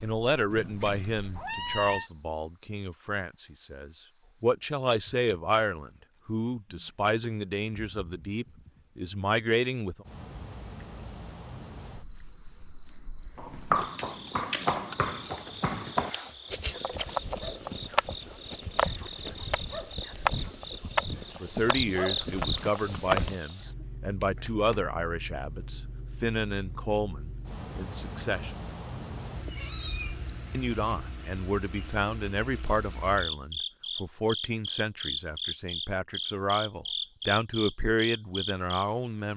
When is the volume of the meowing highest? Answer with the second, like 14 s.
2 s.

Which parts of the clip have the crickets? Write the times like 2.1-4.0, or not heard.
0.0-39.3.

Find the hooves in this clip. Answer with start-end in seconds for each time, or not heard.
13.3-23.4.